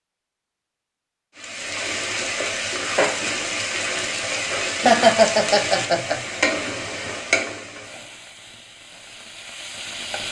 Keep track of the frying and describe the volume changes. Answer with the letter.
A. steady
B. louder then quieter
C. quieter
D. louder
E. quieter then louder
C.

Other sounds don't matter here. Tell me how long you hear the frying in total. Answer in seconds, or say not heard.
9 s.